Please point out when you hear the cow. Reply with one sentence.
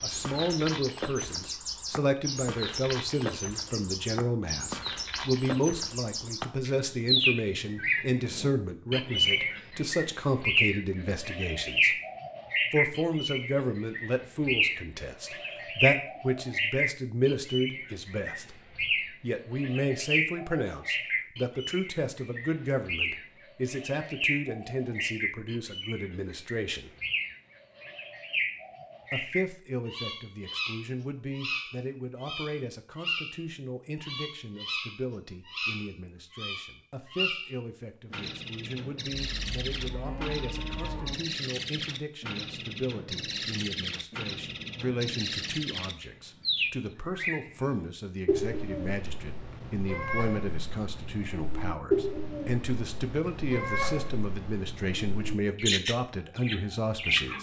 The cow can be heard from 39.1 to 41.1 s.